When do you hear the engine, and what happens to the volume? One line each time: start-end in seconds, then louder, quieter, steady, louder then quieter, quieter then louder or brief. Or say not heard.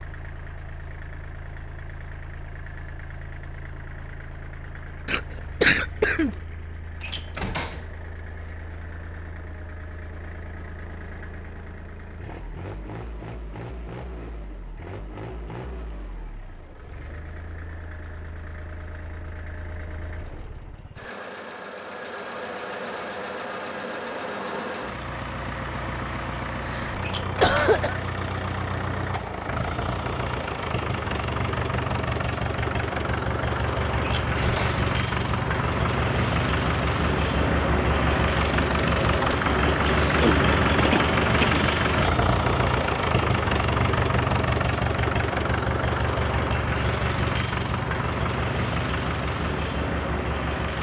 0.0-50.7 louder.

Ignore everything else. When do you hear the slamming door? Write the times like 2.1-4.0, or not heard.
7.0-8.0, 27.0-27.9, 34.0-34.9.